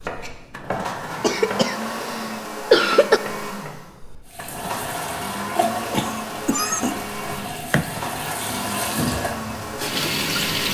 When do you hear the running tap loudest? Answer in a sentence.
The volume of the running tap peaks at 10 seconds.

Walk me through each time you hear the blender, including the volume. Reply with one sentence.
The blender can be heard from 0.0 to 10.6 s, at a steady volume.